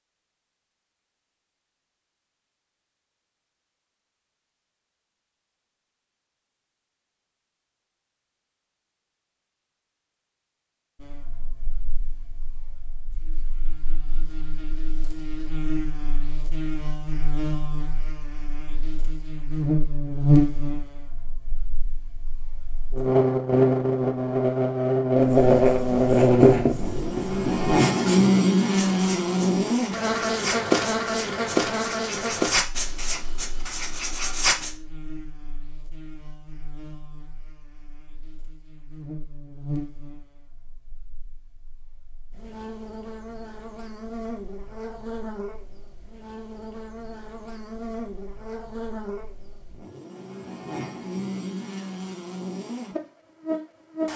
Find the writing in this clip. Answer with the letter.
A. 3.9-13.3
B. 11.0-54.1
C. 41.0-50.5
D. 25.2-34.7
D.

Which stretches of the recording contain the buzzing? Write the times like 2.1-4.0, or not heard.
11.0-54.1.